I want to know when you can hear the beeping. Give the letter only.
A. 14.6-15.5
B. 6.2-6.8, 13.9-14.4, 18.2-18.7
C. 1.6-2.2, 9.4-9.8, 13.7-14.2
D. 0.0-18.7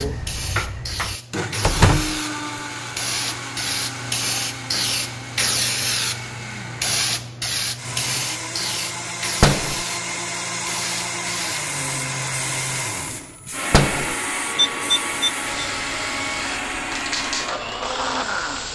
A.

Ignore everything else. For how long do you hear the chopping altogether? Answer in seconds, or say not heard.
not heard.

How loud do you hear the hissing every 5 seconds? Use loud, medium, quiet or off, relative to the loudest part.
loud, loud, medium, medium.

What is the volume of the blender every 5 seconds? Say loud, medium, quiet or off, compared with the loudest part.
loud, medium, loud, loud.